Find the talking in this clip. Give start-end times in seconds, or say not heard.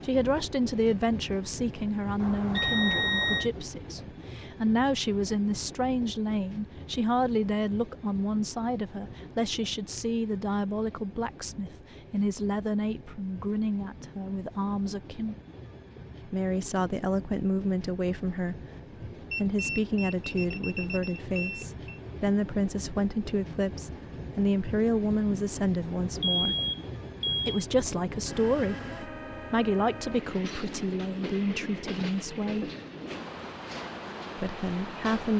0.0-15.3, 16.2-18.6, 19.4-26.6, 27.4-32.7, 34.4-35.3.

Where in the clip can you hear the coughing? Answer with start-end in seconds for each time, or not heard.
not heard.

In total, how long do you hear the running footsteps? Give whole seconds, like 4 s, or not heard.
not heard.